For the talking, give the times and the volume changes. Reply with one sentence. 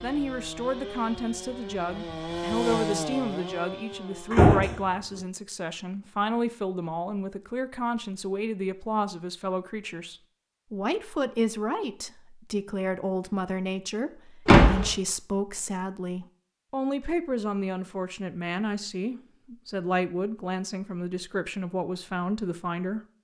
You can hear the talking from 0.0 to 23.0 s, at a steady volume.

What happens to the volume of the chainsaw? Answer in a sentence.
The loudness of the chainsaw goes up, then down.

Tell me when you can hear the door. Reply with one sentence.
The door can be heard from 4.3 to 4.8 s and from 14.4 to 14.9 s.